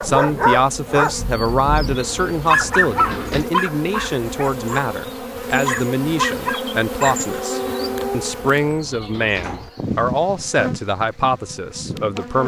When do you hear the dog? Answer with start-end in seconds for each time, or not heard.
0.0-8.4.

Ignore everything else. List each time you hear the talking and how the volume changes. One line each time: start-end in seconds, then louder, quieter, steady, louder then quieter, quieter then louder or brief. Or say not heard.
0.0-12.4 steady.